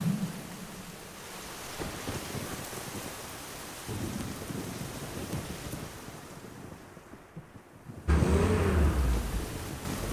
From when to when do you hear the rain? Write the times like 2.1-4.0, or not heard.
0.0-10.0.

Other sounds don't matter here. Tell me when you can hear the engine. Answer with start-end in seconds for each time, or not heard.
8.1-10.0.